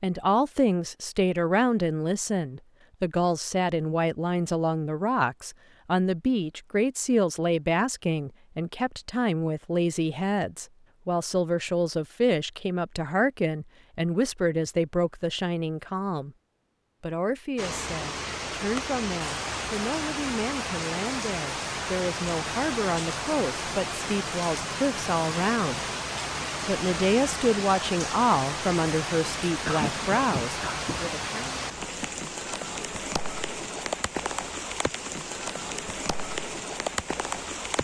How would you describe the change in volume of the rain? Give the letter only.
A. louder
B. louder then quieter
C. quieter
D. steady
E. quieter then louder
D.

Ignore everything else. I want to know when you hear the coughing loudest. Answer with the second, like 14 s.
30 s.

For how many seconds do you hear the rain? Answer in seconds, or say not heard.
20 s.